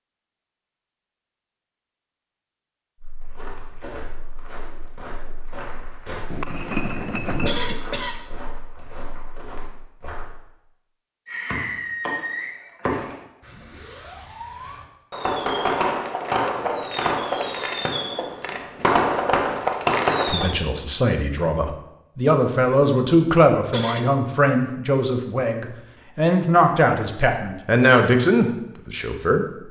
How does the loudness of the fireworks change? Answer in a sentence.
The volume of the fireworks goes down, then up.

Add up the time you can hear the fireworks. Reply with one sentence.
The fireworks can be heard for 9 seconds in total.